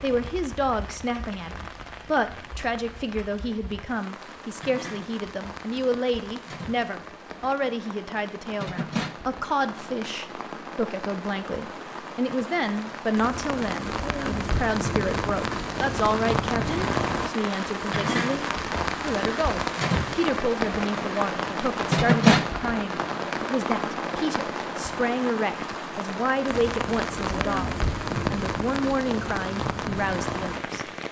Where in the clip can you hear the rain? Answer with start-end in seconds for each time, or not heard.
0.0-31.0.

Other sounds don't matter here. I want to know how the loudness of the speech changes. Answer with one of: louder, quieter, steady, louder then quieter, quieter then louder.
steady.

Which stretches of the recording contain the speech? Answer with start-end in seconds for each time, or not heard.
0.0-30.9.